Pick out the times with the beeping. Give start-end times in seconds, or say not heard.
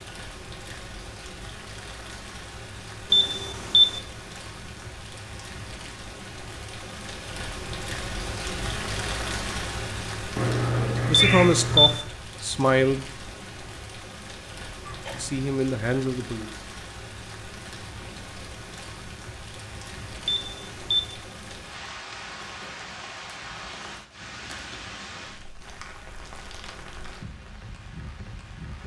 3.1-4.0, 11.1-12.0, 20.2-21.1.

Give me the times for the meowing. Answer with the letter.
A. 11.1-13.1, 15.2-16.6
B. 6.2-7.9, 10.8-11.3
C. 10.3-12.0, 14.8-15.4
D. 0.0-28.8
C.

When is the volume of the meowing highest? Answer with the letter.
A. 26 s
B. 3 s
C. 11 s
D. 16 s
C.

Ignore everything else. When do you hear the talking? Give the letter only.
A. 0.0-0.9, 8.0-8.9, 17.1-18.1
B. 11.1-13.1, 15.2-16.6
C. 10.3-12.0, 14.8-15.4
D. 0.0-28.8
B.